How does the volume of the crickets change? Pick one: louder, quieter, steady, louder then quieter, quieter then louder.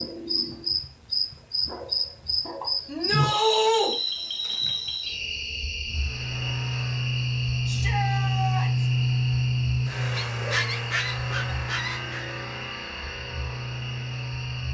quieter.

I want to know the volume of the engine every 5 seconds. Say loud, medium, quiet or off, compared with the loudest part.
off, loud, medium.